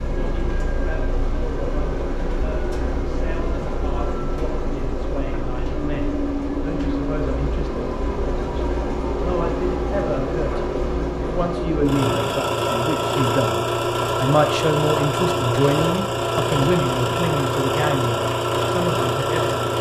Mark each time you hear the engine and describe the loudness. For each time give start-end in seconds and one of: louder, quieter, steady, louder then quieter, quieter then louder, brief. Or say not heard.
0.0-19.7 louder.